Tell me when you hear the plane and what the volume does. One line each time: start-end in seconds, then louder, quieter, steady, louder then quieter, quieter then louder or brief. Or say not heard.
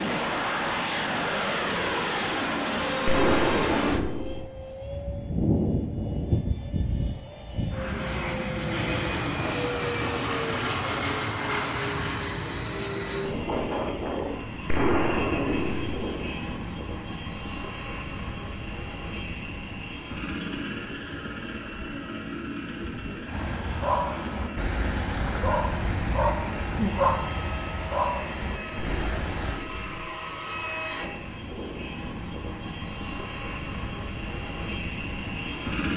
0.0-35.9 quieter.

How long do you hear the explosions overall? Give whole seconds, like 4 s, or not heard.
4 s.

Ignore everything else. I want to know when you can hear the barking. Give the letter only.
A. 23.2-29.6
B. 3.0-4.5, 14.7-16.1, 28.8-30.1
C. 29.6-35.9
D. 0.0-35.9
A.